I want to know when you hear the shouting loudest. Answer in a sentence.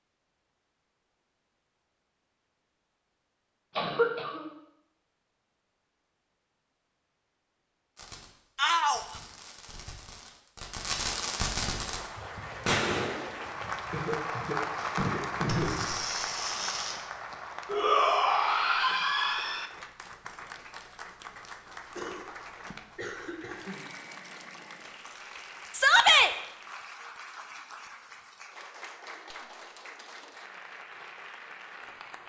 The volume of the shouting peaks at 26 seconds.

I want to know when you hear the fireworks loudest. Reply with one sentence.
The loudest moment of the fireworks is at 13 seconds.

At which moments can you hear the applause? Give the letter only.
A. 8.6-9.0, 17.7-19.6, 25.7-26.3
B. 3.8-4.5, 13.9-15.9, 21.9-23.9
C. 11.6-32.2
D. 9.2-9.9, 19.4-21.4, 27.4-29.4
C.